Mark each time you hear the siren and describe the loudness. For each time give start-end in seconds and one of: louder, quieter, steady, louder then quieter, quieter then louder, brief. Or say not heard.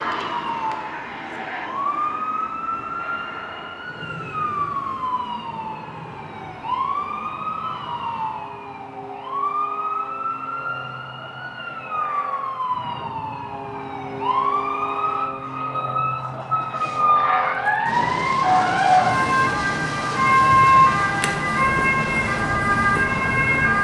0.0-23.7 louder.